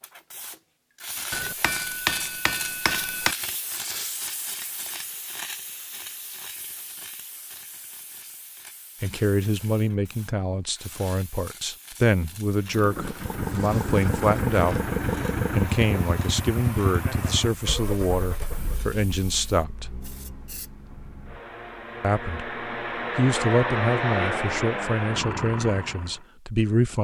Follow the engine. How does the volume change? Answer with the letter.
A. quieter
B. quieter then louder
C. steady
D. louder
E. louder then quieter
B.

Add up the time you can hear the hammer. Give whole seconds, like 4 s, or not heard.
2 s.